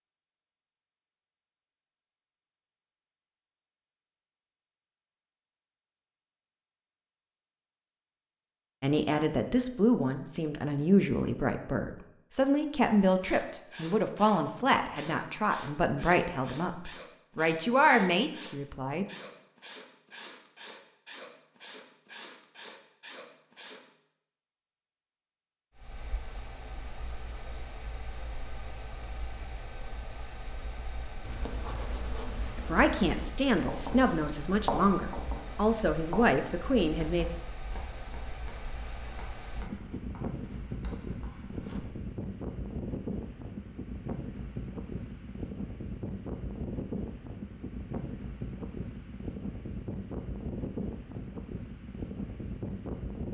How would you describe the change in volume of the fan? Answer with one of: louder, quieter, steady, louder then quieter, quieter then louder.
louder.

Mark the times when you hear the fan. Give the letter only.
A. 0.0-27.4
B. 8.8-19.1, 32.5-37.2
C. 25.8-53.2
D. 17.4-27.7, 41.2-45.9
C.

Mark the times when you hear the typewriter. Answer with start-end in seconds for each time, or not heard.
not heard.